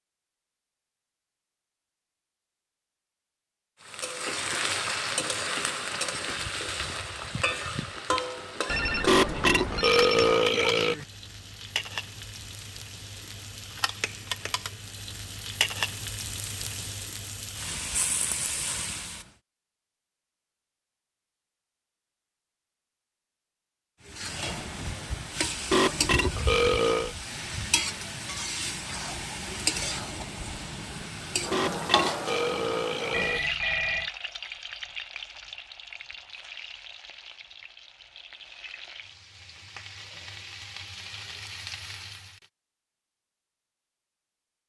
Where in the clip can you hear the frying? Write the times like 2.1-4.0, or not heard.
3.9-19.2, 24.1-42.5.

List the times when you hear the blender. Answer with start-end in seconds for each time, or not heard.
not heard.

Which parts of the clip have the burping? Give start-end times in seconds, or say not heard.
9.1-11.1, 25.7-27.1, 31.5-33.5.